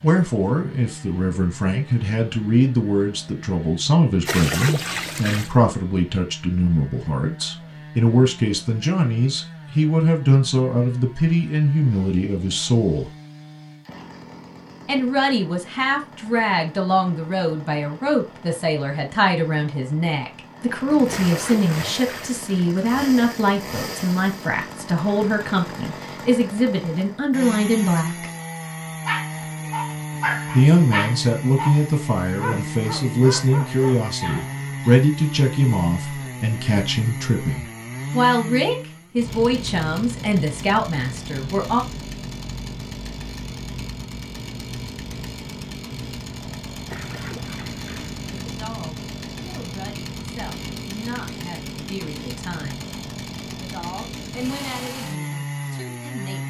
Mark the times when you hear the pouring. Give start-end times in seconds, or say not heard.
4.2-5.5, 21.1-22.9, 46.9-48.2.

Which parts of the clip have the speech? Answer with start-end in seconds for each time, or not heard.
0.0-13.1, 14.8-28.3, 30.5-41.8, 48.4-52.9, 53.5-56.4.